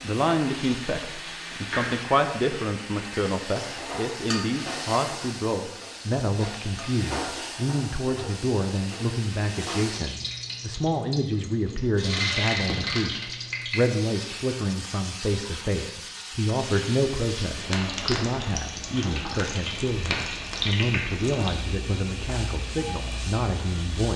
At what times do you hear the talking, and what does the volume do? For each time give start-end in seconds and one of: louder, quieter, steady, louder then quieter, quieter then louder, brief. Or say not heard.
0.0-24.1 steady.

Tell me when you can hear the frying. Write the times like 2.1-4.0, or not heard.
0.0-24.1.